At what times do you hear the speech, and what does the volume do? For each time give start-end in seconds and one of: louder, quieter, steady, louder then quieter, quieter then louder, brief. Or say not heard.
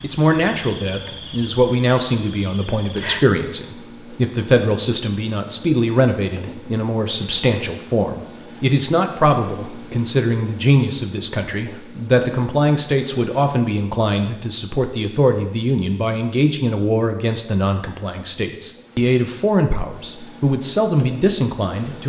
0.0-22.0 steady.